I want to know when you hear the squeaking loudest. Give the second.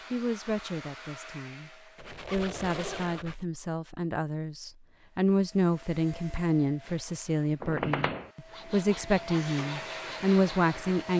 8 s.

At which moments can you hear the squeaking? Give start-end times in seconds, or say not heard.
1.9-3.6, 7.6-8.3.